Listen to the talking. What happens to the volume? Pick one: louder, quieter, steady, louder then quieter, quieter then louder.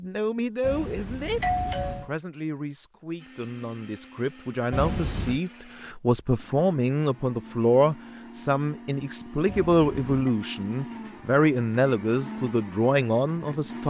louder.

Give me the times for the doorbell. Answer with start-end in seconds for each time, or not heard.
0.6-2.1, 4.7-5.4, 9.4-10.3.